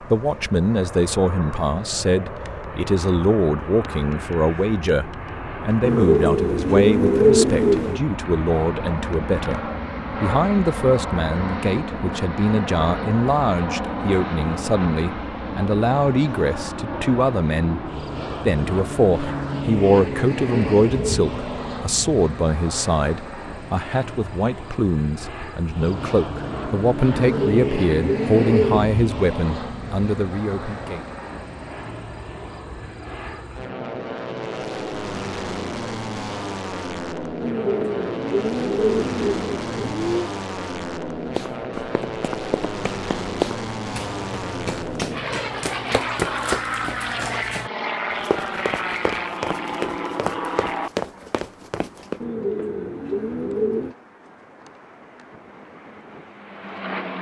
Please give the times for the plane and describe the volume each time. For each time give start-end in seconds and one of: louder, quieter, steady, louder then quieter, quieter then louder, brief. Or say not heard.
0.0-57.1 steady.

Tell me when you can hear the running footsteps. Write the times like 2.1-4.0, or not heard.
41.3-52.2.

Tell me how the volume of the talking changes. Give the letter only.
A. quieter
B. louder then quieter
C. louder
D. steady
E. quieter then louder
D.